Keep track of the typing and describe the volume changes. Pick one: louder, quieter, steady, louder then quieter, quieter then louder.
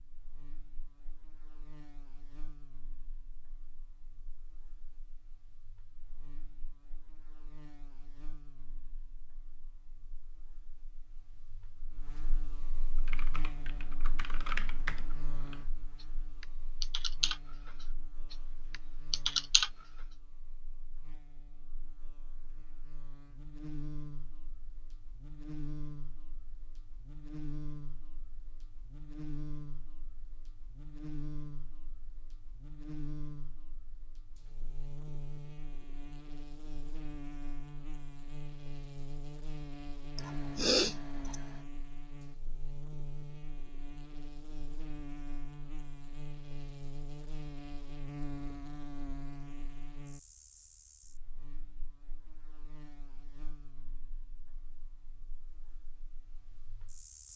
louder.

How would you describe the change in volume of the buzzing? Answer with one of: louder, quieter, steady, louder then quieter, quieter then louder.
louder.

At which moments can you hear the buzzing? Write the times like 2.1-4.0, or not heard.
0.0-57.3.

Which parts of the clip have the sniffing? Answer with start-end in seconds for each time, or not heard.
40.1-41.4.